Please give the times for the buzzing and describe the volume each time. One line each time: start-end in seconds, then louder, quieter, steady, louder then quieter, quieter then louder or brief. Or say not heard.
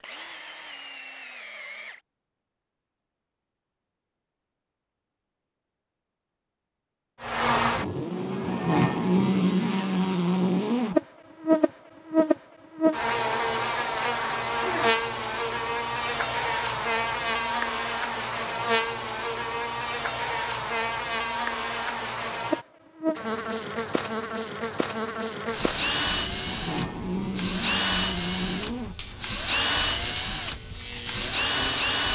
7.2-32.0 quieter.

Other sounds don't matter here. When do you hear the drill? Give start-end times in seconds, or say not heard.
0.0-2.0, 25.5-32.0.